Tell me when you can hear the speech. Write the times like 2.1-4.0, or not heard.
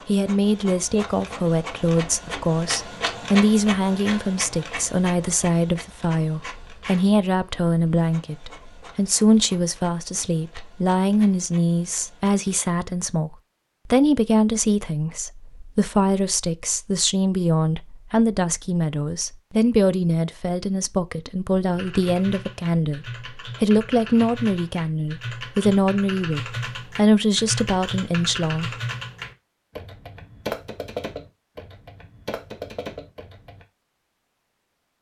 0.1-28.8.